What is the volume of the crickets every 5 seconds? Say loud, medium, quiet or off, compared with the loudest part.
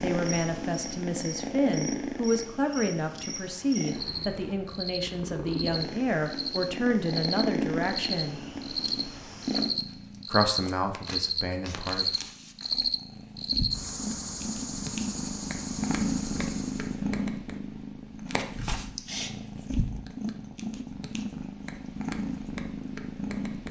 medium, loud, loud, medium, off.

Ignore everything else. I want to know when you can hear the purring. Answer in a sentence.
You can hear the purring from 0.0 to 23.6 s.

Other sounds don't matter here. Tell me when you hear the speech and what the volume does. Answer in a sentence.
The speech can be heard from 0.0 to 8.4 s, at a steady volume; and briefly from 10.2 to 12.1 s.